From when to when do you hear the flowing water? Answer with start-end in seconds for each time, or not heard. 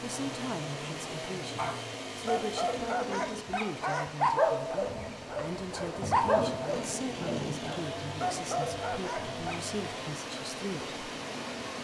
0.0-11.8.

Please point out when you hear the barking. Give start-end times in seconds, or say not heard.
1.6-9.6.